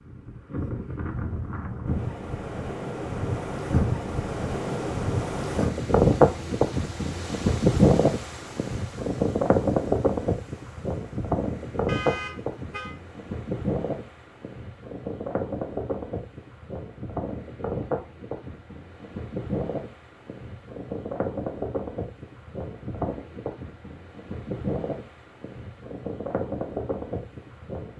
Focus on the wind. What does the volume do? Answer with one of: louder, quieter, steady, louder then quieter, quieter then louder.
louder then quieter.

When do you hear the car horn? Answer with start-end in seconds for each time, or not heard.
11.8-12.9.